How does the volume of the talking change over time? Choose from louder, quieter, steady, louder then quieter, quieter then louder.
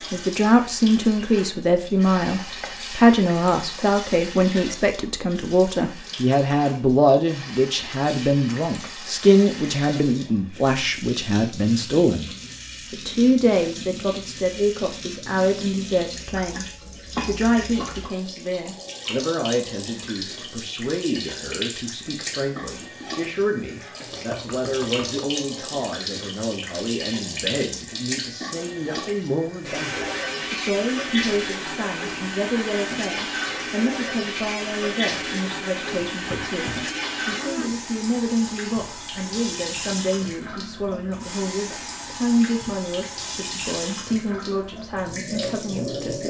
quieter.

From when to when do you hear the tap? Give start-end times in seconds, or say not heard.
0.0-46.2.